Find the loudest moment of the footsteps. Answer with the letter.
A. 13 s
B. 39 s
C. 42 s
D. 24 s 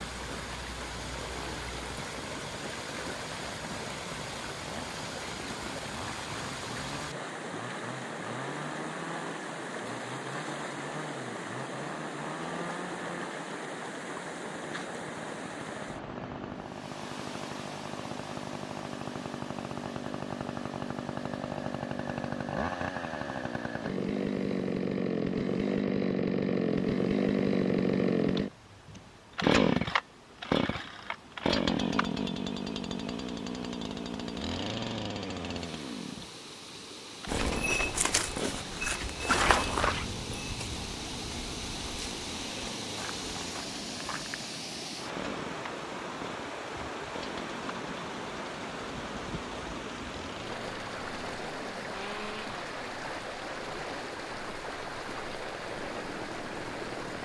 B.